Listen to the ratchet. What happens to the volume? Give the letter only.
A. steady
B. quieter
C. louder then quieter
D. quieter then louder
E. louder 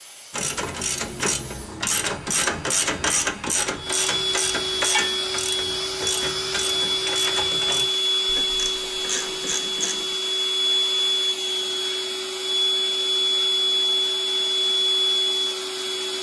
B.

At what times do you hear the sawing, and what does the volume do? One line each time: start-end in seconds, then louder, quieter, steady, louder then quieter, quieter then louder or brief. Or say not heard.
not heard.